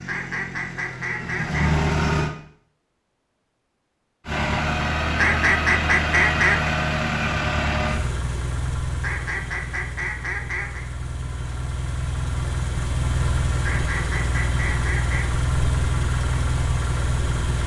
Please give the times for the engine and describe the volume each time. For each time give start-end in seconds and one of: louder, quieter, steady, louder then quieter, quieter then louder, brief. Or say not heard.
0.0-2.3 brief
4.2-17.6 quieter then louder.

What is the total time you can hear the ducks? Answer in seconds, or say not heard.
7 s.